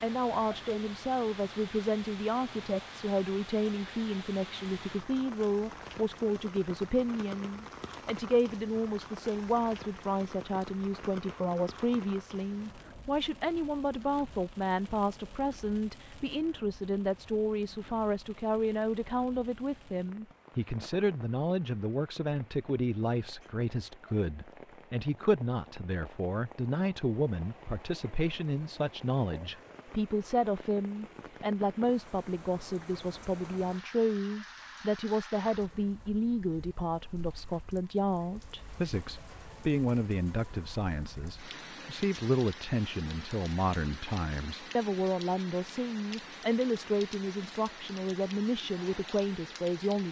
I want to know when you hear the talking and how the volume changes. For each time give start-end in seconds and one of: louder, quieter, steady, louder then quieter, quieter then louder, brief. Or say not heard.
0.0-50.0 steady.